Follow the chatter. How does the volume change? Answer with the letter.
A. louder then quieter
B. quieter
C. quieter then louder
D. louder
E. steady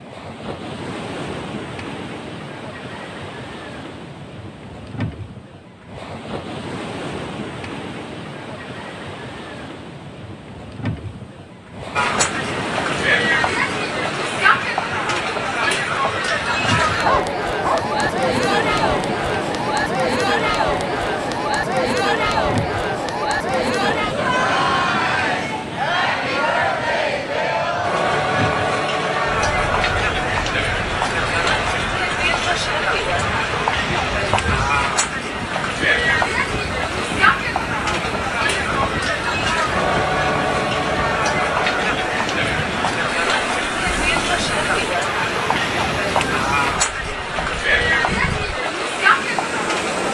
E.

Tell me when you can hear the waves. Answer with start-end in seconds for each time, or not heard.
0.0-50.0.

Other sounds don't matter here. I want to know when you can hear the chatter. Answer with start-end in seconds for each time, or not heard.
11.9-50.0.